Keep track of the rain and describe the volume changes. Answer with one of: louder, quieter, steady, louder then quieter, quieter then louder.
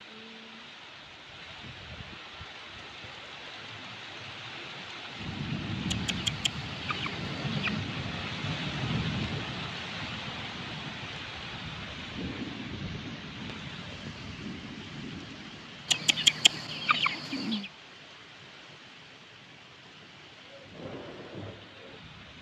louder then quieter.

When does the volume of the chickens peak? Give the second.
16 s.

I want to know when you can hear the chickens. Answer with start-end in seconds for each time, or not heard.
5.8-7.8, 15.8-17.7.